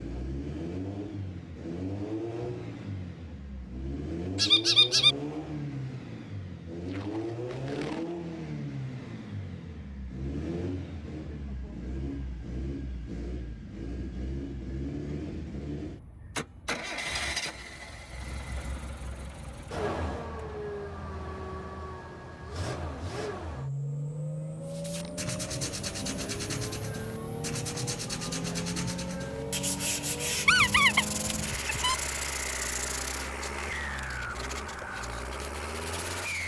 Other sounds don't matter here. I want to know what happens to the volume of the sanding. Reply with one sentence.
The loudness of the sanding goes down.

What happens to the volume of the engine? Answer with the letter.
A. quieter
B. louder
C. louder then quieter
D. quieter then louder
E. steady
E.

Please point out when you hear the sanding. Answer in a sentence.
You can hear the sanding from 24.6 to 36.4 s.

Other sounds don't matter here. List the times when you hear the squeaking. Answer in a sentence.
You can hear the squeaking from 4.3 to 5.2 s and from 30.4 to 31.9 s.